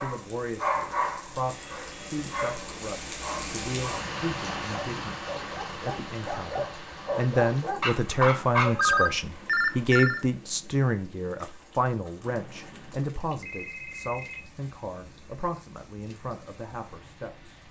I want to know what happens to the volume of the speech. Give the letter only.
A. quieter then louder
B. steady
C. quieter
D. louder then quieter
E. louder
D.